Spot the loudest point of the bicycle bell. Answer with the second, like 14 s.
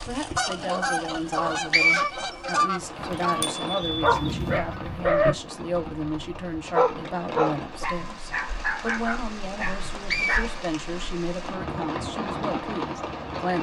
4 s.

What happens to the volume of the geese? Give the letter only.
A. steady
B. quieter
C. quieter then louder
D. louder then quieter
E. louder
B.